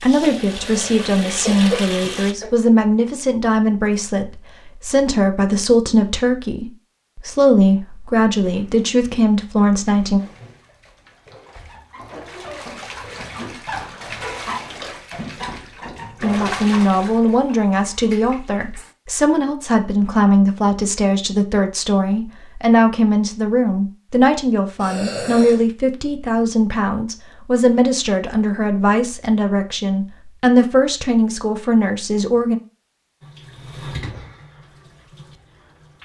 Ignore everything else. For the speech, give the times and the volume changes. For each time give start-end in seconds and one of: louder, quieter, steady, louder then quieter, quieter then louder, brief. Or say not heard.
0.0-10.2 steady
16.2-32.6 steady.